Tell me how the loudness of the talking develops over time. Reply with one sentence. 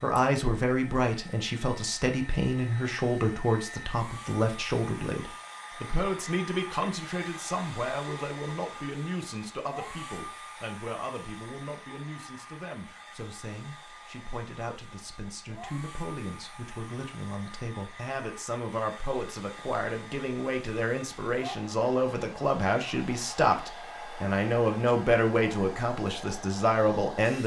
The volume of the talking goes down, then up.